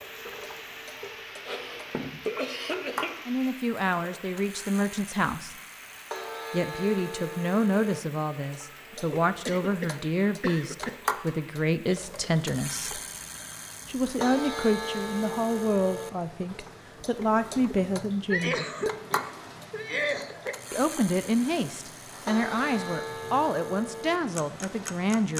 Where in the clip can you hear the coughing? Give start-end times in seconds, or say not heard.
1.4-3.2, 8.9-10.9, 18.2-20.6.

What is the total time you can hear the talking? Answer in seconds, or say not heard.
18 s.